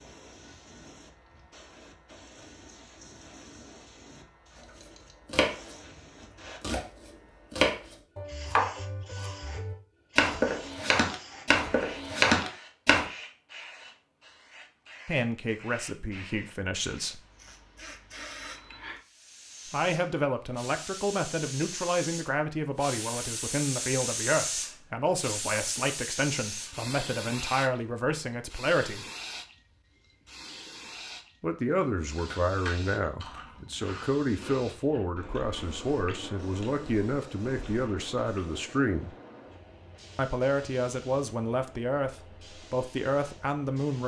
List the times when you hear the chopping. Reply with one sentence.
The chopping can be heard from 4.8 to 5.8 s and from 6.6 to 13.1 s.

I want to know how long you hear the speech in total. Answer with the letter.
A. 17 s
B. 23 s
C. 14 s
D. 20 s
B.